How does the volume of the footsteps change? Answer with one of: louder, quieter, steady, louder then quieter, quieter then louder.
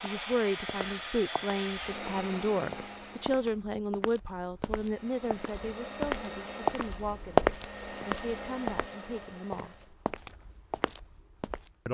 louder then quieter.